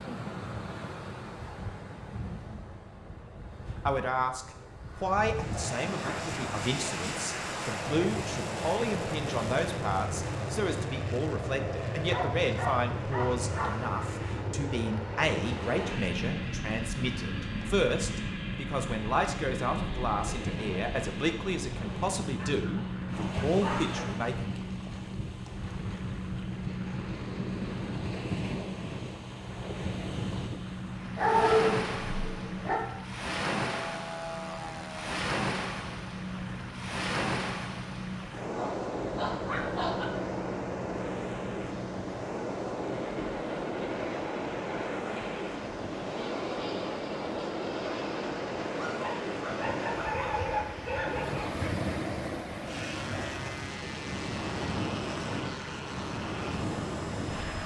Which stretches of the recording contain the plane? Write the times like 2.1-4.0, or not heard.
5.3-57.6.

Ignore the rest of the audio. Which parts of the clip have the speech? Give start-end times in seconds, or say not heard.
3.9-24.6.